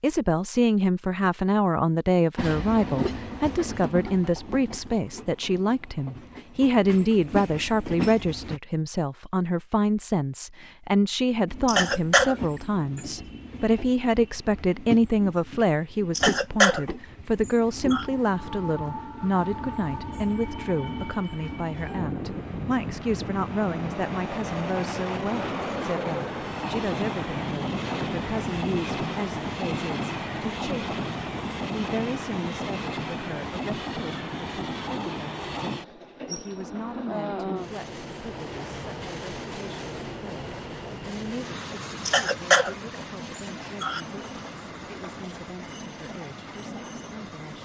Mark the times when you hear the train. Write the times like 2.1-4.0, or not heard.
2.4-8.6, 11.4-47.6.